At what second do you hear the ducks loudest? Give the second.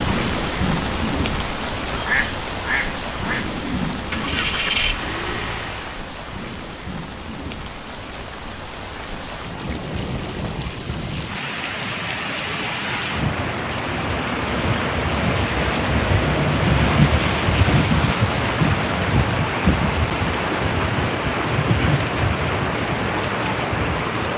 2 s.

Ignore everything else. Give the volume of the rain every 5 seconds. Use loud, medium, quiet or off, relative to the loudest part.
medium, quiet, medium, loud, loud.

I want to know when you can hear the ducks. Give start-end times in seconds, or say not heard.
1.9-3.5.